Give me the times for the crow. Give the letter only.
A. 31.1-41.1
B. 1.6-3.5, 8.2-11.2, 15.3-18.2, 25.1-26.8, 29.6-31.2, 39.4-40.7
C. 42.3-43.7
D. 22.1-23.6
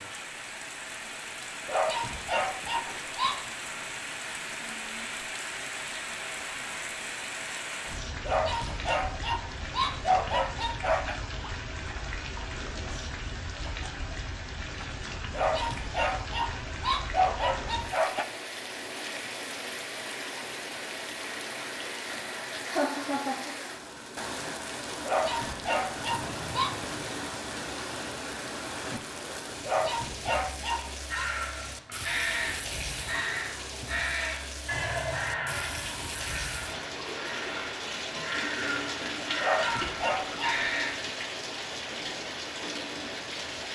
A.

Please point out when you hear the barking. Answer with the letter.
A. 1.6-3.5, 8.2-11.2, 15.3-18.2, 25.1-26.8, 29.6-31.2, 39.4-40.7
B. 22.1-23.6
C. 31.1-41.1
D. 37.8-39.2
A.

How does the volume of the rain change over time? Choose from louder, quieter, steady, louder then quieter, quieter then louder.
steady.